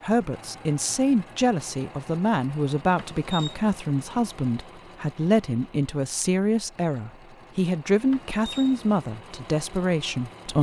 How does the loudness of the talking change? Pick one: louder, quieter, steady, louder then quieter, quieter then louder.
steady.